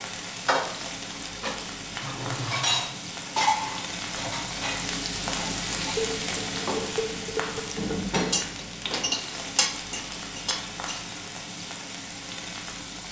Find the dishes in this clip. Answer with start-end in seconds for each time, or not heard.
0.5-11.0.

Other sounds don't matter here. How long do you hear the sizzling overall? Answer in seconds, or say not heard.
13 s.